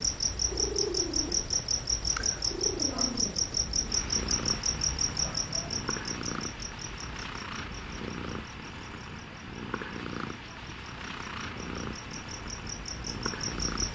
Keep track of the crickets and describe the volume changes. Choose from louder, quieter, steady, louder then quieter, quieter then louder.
quieter then louder.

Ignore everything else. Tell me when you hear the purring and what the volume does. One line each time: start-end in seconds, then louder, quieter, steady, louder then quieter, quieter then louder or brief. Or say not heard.
0.1-13.8 steady.